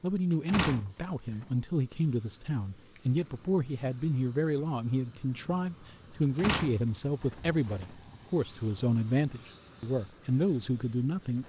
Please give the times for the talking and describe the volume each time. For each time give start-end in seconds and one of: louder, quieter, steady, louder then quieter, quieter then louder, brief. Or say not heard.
0.0-11.4 steady.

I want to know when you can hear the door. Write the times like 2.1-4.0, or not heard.
0.3-1.4, 6.3-8.0.